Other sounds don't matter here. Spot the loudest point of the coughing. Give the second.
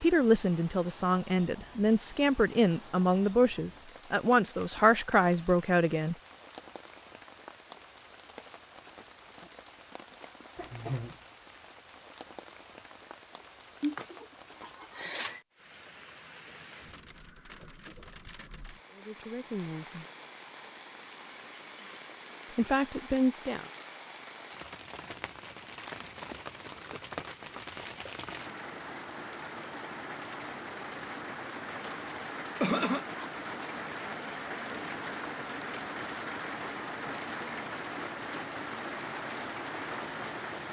33 s.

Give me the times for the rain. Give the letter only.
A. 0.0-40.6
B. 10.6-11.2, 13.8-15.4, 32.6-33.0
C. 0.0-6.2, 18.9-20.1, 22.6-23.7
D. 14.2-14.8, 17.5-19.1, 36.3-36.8
A.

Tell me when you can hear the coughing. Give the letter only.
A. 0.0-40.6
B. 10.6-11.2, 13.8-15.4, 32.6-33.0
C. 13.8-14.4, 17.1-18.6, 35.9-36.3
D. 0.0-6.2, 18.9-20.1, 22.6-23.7
B.